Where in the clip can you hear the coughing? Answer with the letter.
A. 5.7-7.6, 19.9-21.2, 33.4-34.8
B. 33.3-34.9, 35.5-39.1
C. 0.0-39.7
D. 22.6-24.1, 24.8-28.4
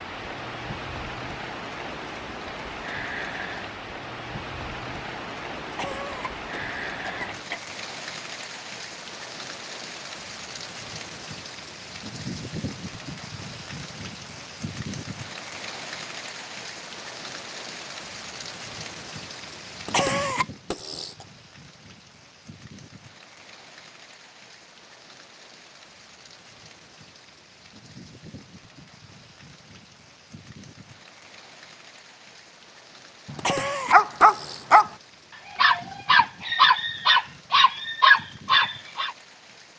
A.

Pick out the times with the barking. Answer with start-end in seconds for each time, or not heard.
33.3-34.9, 35.5-39.1.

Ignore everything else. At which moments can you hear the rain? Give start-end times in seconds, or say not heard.
0.0-39.7.